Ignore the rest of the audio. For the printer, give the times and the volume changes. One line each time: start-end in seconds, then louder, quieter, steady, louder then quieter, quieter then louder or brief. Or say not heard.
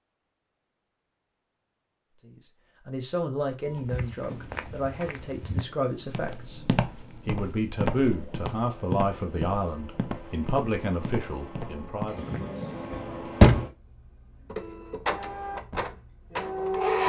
3.6-17.0 louder.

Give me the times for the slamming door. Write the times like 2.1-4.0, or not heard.
12.9-13.7.